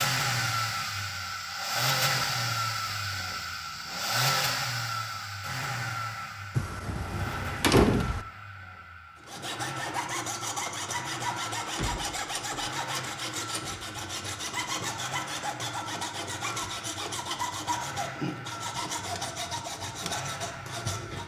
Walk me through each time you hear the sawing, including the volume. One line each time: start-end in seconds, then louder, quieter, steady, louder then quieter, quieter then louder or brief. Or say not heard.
9.2-21.2 steady.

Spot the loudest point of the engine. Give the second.
2 s.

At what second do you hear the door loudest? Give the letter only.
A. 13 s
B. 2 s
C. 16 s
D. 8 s
D.